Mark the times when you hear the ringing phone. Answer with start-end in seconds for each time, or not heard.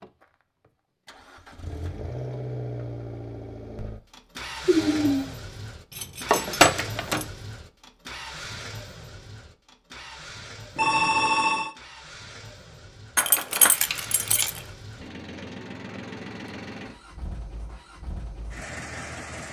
4.7-5.3, 10.8-11.7.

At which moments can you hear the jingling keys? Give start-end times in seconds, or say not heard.
5.9-7.2, 13.2-14.6.